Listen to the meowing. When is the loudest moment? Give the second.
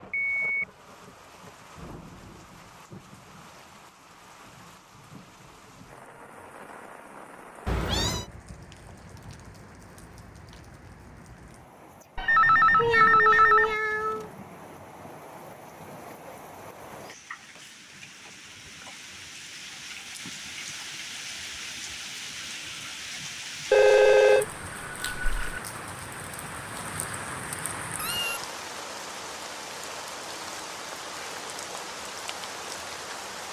13 s.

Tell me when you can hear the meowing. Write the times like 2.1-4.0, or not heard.
7.7-8.2, 12.8-14.3, 27.9-28.4.